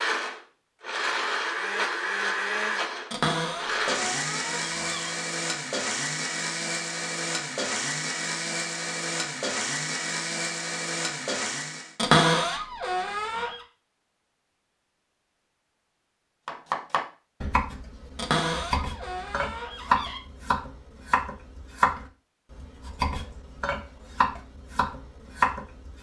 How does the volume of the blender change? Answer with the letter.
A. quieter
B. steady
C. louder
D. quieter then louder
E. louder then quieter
B.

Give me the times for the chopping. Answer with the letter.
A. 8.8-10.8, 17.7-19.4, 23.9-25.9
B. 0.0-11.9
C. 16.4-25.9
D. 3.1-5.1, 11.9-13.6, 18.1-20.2
C.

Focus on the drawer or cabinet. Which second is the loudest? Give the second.
12 s.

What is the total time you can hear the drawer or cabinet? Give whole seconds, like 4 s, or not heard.
6 s.